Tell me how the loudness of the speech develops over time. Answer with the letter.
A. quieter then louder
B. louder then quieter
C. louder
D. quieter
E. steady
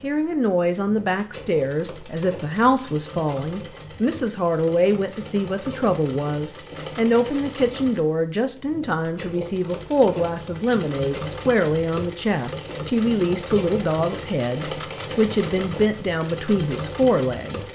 E.